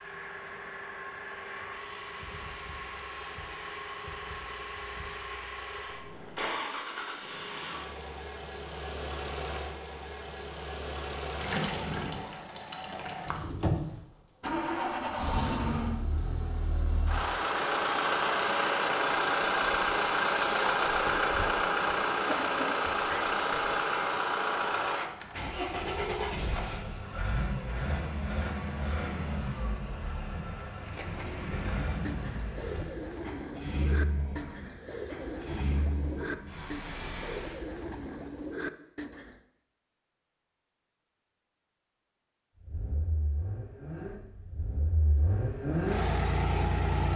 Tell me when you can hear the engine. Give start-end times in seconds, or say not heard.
0.0-37.6, 42.6-47.1.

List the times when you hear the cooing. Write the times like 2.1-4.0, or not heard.
30.8-39.4.